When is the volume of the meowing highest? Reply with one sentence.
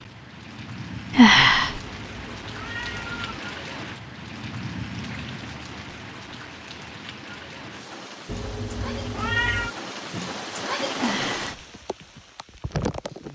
The loudest moment of the meowing is at 9 seconds.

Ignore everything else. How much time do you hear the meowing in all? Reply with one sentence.
The meowing can be heard for 3 seconds in total.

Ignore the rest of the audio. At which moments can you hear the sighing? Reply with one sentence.
The sighing can be heard from 1.1 to 1.8 s and from 10.9 to 11.6 s.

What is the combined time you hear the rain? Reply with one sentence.
The rain can be heard for 13 seconds in total.